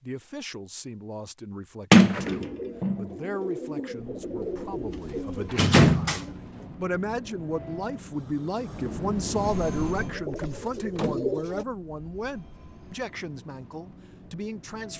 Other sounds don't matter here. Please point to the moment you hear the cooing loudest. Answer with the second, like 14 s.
11 s.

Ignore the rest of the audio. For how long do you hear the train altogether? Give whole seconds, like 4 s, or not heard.
11 s.